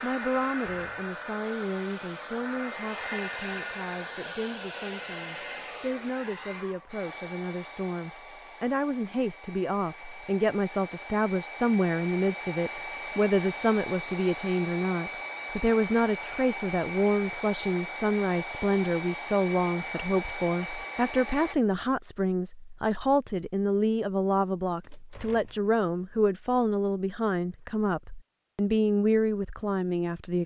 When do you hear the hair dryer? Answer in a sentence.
The hair dryer can be heard from 0.0 to 21.6 s.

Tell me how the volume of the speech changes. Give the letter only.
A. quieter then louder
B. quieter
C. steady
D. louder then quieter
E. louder
E.